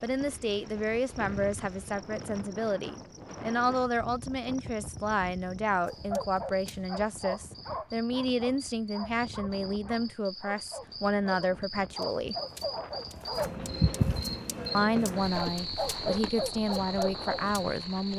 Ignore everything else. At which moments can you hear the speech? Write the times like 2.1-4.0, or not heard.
0.0-12.3, 14.7-18.1.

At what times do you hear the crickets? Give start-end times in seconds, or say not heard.
0.0-18.1.